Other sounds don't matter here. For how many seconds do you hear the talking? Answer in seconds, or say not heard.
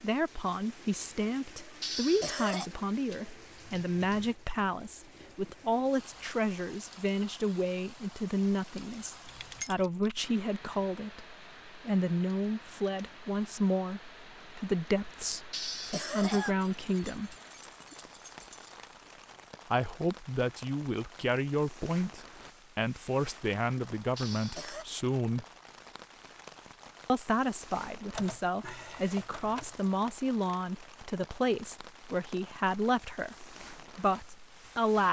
31 s.